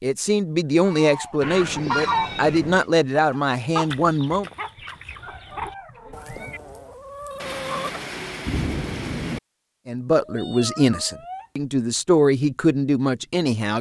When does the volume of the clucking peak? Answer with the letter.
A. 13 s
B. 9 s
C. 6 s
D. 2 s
D.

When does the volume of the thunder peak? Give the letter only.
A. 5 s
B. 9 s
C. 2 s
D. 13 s
B.